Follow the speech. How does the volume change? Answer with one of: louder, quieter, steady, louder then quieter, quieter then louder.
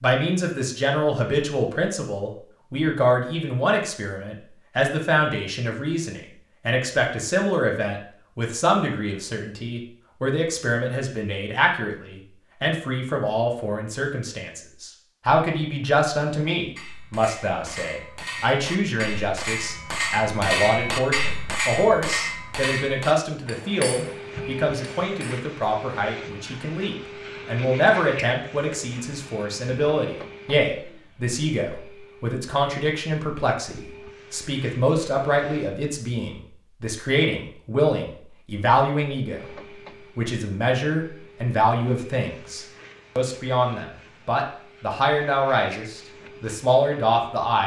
steady.